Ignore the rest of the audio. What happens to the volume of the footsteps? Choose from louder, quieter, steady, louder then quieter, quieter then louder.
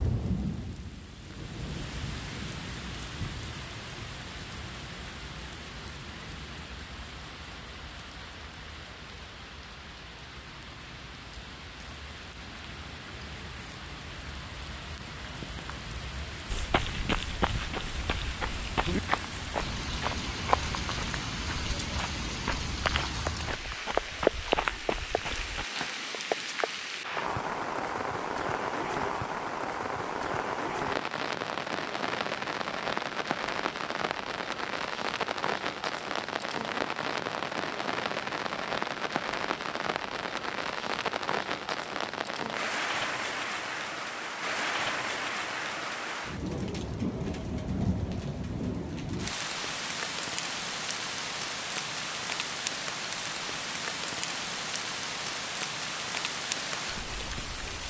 steady.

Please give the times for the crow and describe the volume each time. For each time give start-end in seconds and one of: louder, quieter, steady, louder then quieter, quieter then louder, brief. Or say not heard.
not heard.